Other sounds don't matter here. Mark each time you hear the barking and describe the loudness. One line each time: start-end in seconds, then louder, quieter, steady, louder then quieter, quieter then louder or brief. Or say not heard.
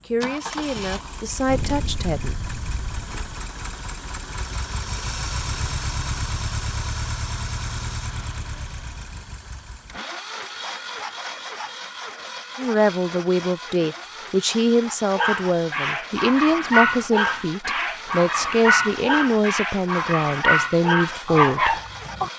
15.2-22.3 steady.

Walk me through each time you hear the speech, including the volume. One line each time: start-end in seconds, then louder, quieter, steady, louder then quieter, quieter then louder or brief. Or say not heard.
0.1-2.4 brief
12.6-21.8 steady.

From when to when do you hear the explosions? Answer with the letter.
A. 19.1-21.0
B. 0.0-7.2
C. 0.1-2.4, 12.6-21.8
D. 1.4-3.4
D.